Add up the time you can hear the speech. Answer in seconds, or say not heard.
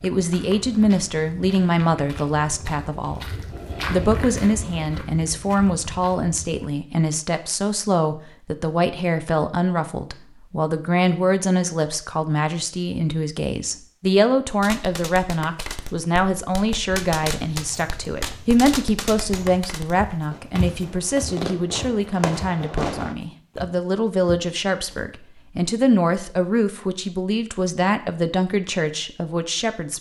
30 s.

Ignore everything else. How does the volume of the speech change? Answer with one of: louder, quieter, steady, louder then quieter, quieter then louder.
steady.